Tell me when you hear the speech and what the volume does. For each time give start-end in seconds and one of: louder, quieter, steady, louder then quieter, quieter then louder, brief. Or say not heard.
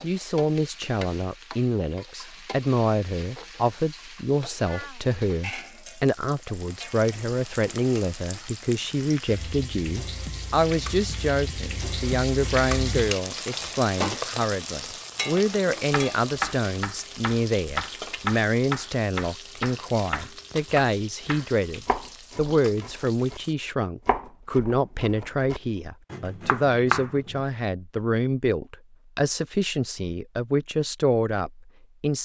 0.0-32.2 steady.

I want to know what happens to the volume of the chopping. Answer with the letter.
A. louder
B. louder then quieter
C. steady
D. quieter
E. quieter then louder
E.